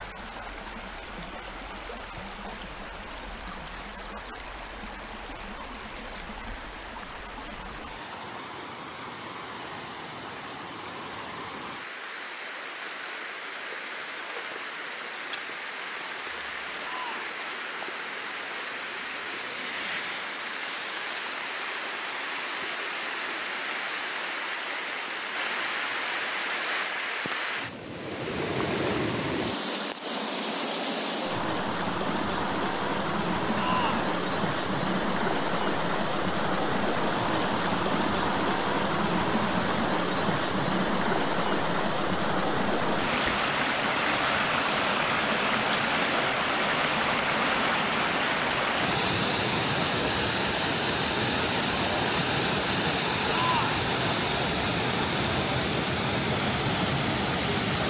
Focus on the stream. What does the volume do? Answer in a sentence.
The loudness of the stream goes up.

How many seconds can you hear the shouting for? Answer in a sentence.
The shouting can be heard for 2 seconds in total.